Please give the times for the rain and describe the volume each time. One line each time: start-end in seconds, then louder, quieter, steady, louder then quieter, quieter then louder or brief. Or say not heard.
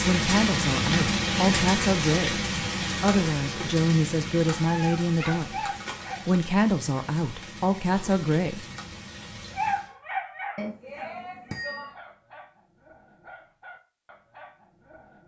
0.0-9.9 quieter.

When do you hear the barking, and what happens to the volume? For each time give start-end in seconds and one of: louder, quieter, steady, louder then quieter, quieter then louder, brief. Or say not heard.
4.6-6.3 brief
9.6-15.2 quieter.